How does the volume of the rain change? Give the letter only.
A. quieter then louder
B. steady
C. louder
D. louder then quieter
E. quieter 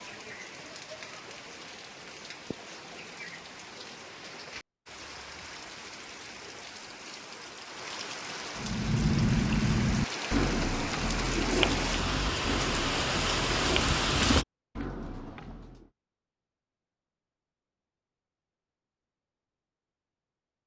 C.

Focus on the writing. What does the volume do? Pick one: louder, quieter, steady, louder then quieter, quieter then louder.
quieter.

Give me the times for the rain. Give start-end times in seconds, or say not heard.
0.0-14.4.